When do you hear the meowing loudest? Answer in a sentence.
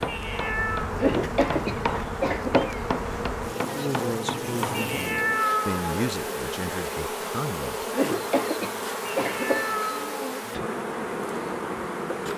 The loudest moment of the meowing is at 5 seconds.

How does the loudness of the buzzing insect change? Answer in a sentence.
The loudness of the buzzing insect stays about the same.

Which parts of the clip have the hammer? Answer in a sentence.
The hammer can be heard from 0.0 to 4.9 s.